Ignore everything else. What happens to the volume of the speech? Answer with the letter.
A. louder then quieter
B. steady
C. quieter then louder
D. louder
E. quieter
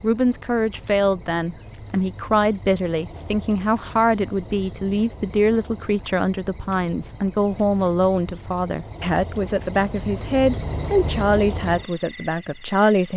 B.